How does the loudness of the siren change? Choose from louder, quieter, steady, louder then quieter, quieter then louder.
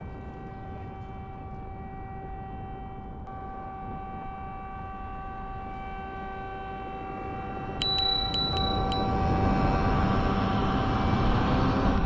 louder.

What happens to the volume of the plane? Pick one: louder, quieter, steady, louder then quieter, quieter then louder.
louder.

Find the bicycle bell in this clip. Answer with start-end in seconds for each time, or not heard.
7.8-9.1.